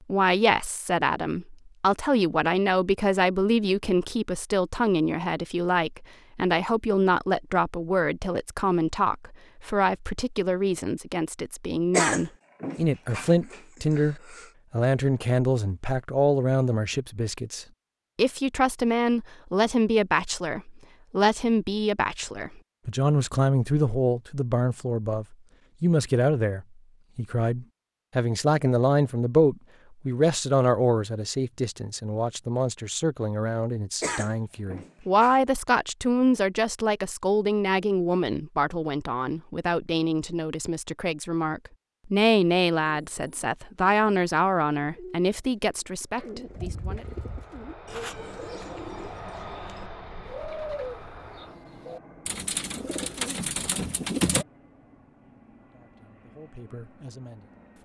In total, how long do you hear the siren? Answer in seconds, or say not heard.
not heard.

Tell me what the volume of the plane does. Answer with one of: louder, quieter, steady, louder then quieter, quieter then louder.
quieter.